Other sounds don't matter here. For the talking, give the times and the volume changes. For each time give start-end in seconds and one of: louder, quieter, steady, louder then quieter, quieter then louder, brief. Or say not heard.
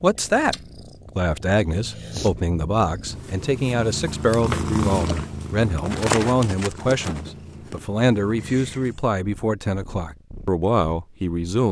0.0-0.6 brief
1.1-11.6 steady.